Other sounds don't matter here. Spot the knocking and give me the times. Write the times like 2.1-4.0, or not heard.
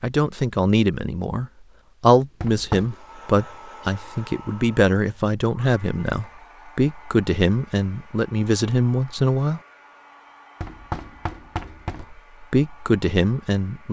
2.4-2.9, 10.6-12.1.